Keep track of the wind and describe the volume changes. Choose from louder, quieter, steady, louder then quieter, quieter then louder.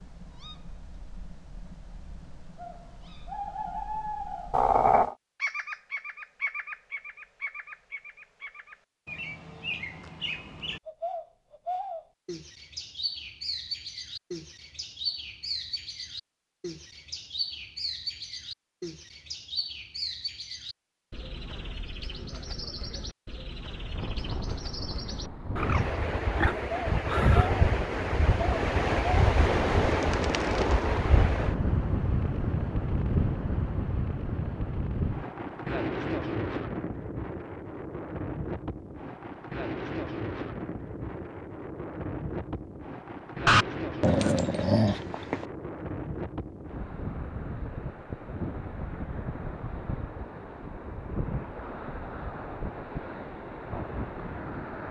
quieter.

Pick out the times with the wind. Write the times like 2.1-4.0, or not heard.
23.8-54.8.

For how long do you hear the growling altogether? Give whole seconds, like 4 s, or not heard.
3 s.